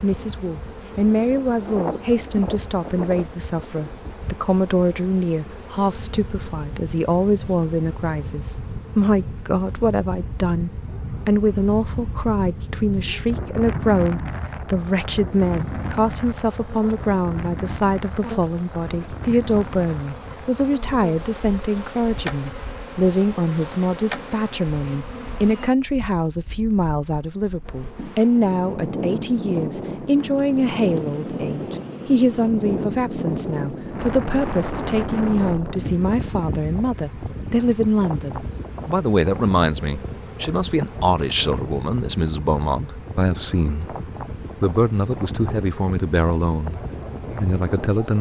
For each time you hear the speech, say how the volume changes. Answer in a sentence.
You can hear the speech from 0.0 to 44.0 s, at a steady volume; briefly from 44.6 to 46.8 s; and briefly from 47.4 to 48.1 s.